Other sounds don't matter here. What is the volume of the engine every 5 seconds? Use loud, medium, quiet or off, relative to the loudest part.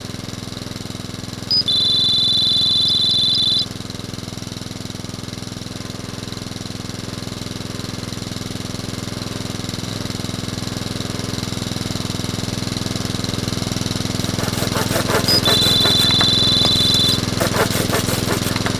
medium, medium, loud, loud.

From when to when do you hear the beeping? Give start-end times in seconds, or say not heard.
1.5-3.6, 15.4-17.2.